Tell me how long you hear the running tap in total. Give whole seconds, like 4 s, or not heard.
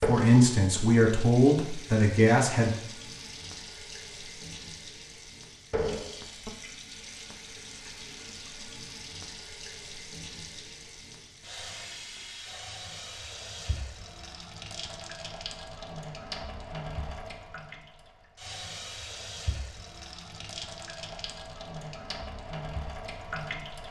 24 s.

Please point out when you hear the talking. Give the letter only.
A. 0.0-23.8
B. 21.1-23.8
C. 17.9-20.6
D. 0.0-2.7
D.